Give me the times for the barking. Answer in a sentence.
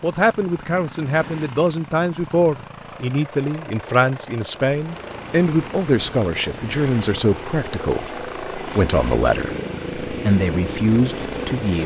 You can't hear the barking here.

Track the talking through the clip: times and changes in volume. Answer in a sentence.
The talking can be heard from 0.0 to 11.8 s, at a steady volume.